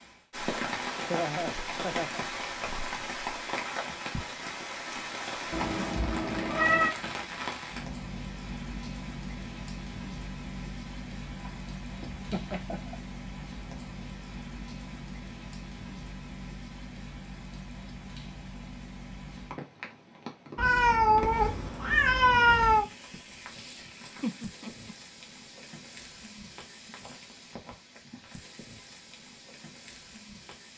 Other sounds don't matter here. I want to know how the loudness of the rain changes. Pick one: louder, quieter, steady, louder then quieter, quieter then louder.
quieter.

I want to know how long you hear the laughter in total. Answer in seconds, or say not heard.
3 s.